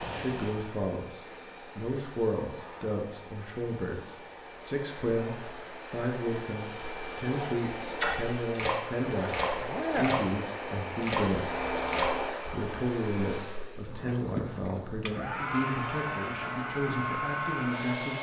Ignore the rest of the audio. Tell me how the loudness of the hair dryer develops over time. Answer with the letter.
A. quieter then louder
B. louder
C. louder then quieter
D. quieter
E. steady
B.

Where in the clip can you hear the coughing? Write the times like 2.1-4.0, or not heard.
not heard.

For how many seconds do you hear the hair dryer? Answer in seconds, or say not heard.
18 s.